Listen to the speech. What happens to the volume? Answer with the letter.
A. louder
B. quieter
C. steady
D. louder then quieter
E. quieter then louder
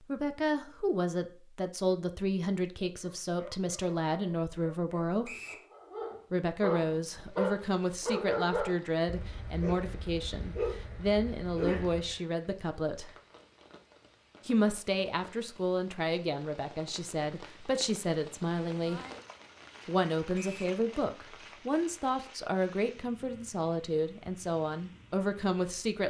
C.